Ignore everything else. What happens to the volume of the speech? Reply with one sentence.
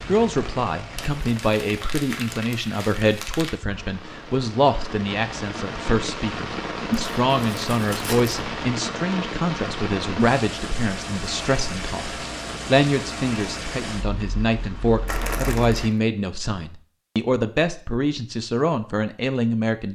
The volume of the speech stays about the same.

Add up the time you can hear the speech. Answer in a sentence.
You can hear the speech for 20 seconds altogether.